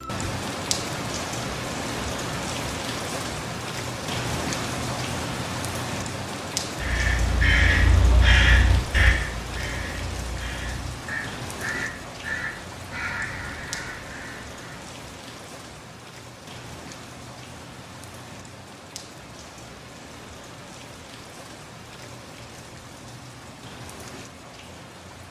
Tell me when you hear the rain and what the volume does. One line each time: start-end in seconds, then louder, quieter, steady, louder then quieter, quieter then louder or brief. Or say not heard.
0.0-25.2 quieter.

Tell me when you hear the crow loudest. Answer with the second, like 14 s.
8 s.